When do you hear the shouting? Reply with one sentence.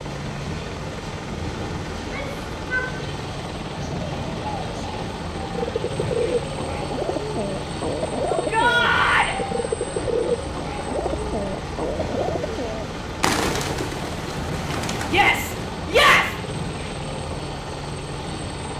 You can hear the shouting from 1.9 to 3.0 s, from 8.3 to 9.3 s and from 15.1 to 16.4 s.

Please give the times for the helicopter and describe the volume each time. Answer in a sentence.
The helicopter can be heard from 0.0 to 18.7 s, at a steady volume.